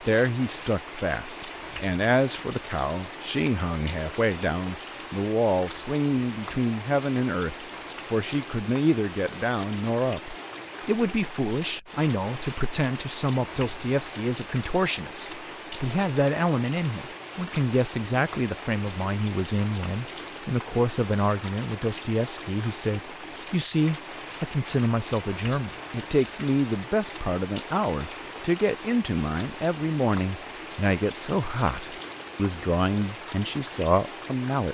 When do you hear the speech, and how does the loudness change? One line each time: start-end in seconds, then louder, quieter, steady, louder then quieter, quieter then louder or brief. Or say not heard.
0.1-34.6 steady.